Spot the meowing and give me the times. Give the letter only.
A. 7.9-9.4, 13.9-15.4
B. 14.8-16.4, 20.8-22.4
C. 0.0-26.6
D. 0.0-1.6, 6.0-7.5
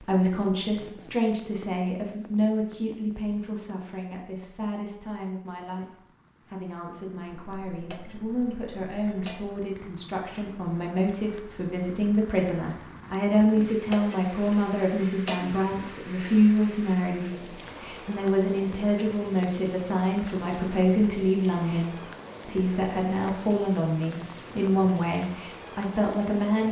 A.